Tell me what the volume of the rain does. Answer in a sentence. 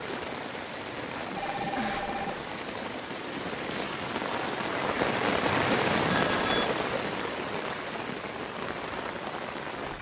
The loudness of the rain goes up, then down.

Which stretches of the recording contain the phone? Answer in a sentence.
The phone can be heard from 1.4 to 2.4 s and from 5.5 to 6.7 s.